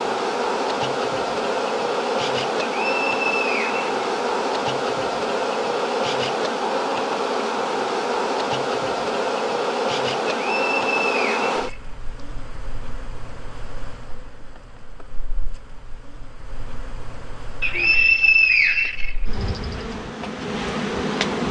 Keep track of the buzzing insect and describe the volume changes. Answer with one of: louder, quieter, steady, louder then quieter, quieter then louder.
quieter then louder.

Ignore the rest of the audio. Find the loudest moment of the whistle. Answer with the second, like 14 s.
18 s.